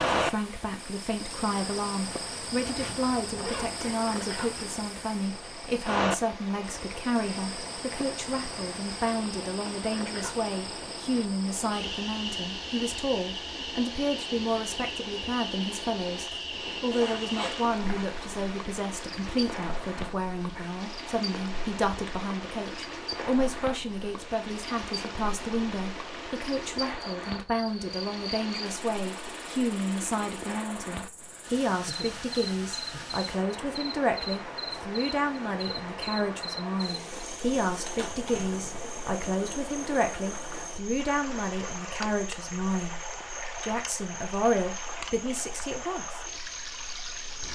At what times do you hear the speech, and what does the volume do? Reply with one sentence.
You can hear the speech from 0.1 to 43.0 s, at a steady volume; and briefly from 43.6 to 46.2 s.